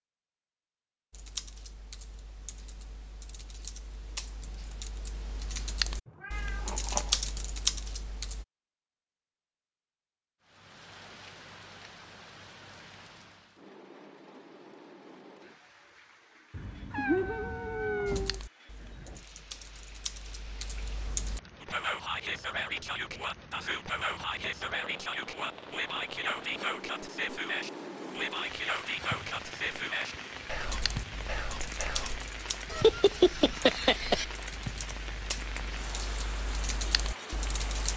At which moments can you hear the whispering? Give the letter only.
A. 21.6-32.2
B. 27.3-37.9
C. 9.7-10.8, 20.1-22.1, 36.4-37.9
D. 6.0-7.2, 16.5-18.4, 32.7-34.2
A.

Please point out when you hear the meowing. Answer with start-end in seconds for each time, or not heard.
6.0-7.2, 16.5-18.4, 32.7-34.2.